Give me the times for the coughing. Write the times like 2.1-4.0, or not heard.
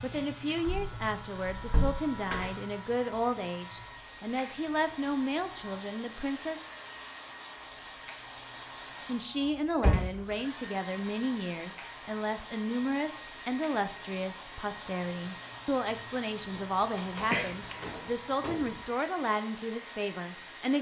17.3-18.0.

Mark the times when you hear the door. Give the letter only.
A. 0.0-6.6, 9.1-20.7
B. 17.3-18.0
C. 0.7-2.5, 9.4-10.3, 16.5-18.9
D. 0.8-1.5
C.